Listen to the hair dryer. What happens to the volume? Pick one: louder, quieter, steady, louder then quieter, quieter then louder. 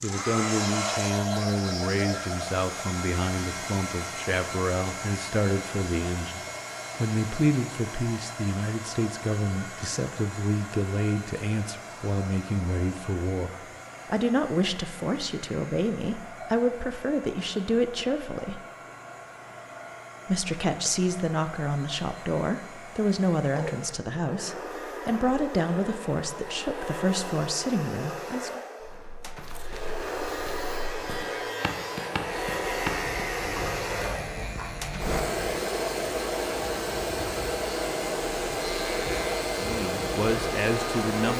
quieter then louder.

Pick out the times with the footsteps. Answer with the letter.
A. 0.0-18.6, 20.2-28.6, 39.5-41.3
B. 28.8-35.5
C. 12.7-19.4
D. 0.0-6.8
B.